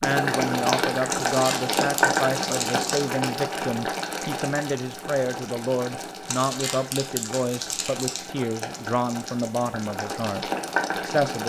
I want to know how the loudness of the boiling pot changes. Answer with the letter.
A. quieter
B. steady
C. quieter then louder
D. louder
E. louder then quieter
C.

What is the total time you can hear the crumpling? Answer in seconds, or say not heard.
4 s.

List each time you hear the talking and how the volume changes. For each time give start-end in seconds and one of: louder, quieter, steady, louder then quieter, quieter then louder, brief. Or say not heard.
0.0-11.4 steady.